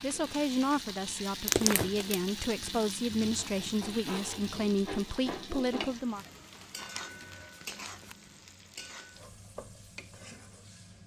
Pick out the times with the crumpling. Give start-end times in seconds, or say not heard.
1.4-2.2, 6.3-8.2.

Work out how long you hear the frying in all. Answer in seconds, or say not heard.
11 s.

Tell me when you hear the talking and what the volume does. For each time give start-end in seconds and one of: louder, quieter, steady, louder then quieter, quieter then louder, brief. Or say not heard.
0.0-6.2 steady.